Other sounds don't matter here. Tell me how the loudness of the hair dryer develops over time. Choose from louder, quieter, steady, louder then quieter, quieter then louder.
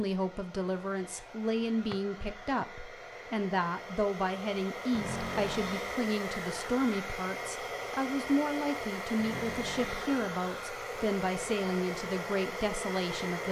louder.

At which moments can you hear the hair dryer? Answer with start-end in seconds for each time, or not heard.
0.0-13.4.